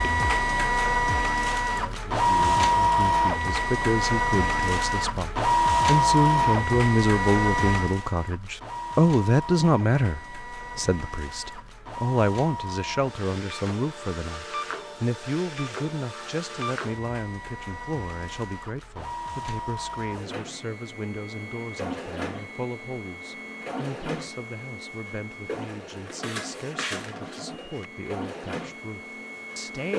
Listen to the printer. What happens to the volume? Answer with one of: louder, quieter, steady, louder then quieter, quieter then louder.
quieter.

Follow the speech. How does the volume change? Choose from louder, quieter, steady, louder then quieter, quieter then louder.
quieter.